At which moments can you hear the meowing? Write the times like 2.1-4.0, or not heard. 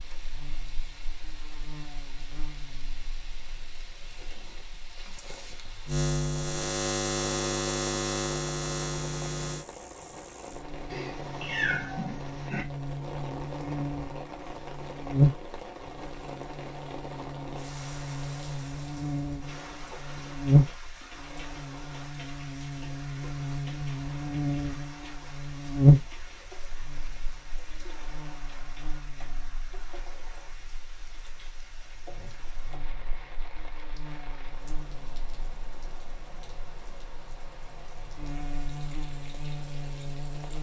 10.9-12.7.